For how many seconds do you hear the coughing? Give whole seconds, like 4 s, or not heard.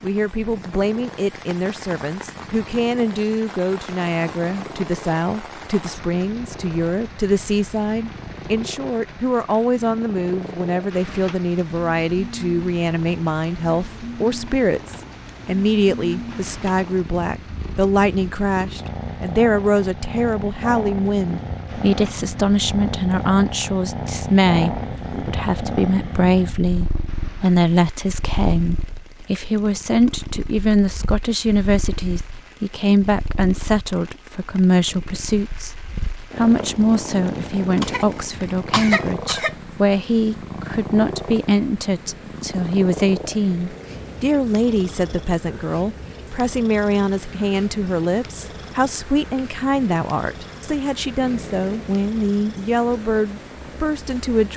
2 s.